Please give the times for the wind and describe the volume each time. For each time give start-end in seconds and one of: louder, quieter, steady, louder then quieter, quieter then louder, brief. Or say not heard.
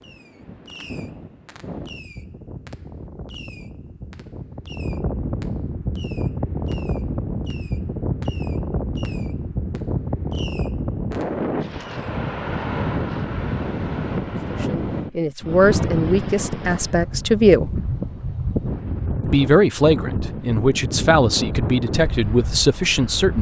0.0-23.3 louder.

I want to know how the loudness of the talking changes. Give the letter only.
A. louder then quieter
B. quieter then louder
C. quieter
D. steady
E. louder
D.